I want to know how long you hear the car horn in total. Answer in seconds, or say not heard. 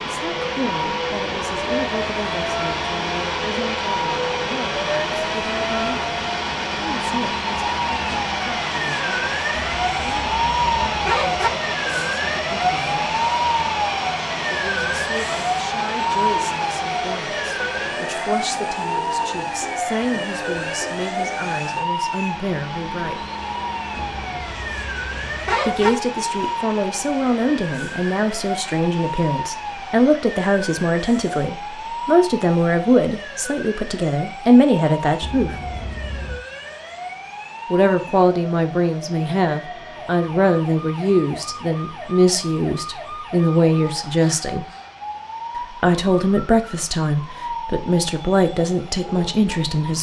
5 s.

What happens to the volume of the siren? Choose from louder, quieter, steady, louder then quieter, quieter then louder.
quieter.